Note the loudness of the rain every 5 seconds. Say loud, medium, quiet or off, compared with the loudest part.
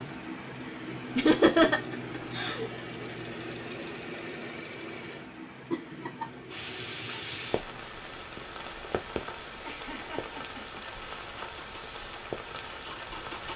off, loud, loud.